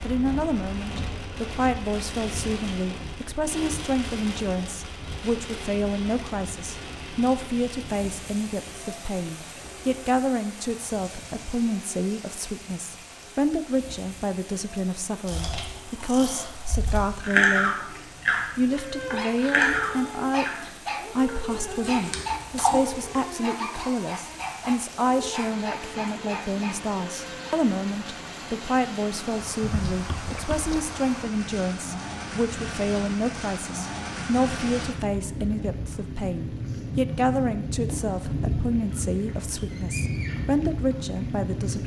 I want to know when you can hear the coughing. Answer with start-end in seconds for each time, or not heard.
29.6-30.9.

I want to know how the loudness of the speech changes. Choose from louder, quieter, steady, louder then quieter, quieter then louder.
steady.